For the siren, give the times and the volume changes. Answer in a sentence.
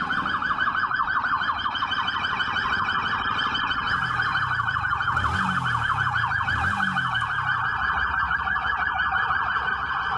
You can hear the siren from 0.0 to 10.1 s, at a steady volume.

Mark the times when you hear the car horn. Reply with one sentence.
You can't hear the car horn here.